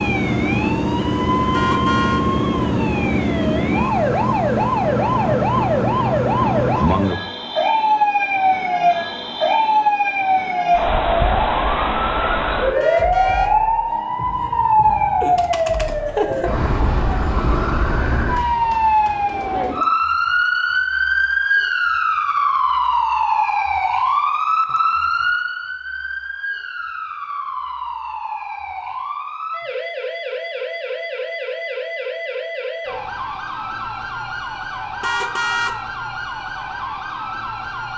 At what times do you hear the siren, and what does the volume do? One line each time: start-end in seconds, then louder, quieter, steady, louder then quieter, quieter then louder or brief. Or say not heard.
0.0-37.9 quieter.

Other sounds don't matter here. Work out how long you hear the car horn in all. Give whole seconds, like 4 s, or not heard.
2 s.